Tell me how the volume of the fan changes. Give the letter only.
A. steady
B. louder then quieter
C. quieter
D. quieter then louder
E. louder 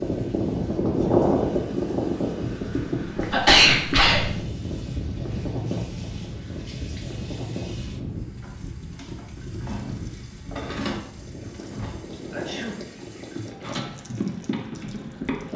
C.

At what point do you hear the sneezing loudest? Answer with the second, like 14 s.
4 s.